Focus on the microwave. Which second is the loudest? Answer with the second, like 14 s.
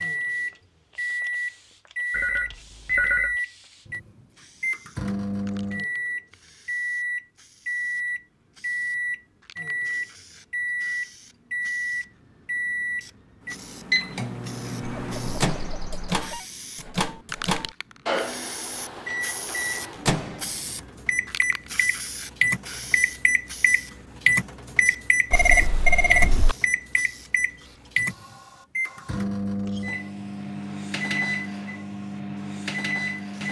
25 s.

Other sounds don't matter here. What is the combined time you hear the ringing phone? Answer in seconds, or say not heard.
4 s.